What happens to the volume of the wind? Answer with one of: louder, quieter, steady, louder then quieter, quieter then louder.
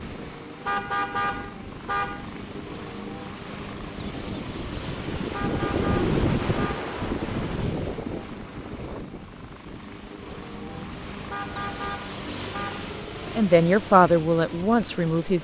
louder then quieter.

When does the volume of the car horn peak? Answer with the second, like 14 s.
1 s.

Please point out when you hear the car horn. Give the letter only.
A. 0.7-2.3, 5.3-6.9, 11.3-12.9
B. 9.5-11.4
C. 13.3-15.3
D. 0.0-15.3
A.